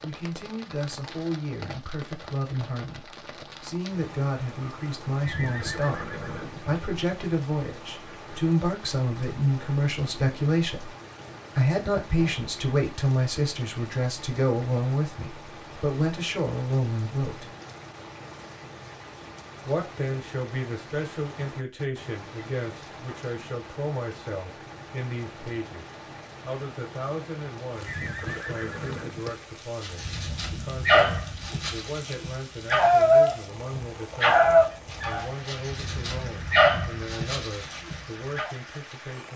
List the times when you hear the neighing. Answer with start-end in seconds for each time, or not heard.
5.2-6.8, 27.9-29.2.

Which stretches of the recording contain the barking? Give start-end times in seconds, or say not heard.
29.8-33.4, 34.2-38.5.